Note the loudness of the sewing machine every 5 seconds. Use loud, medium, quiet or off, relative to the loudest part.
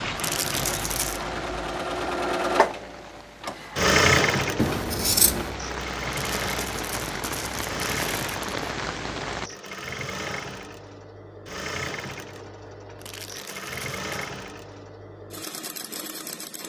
loud, medium, medium, quiet.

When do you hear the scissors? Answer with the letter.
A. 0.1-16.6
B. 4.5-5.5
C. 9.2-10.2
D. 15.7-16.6
B.